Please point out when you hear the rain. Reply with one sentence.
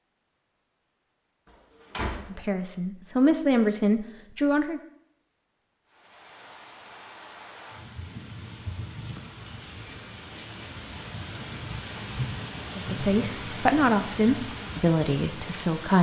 The rain can be heard from 5.8 to 15.9 s.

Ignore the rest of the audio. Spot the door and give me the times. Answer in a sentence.
You can hear the door from 1.4 to 2.4 s.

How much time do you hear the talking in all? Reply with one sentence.
The talking can be heard for 6 seconds in total.